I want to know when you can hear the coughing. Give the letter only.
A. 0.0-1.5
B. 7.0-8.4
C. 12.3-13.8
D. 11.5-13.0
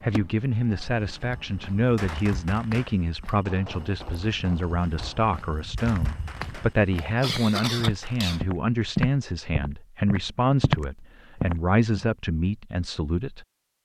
B.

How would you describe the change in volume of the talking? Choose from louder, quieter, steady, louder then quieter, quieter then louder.
steady.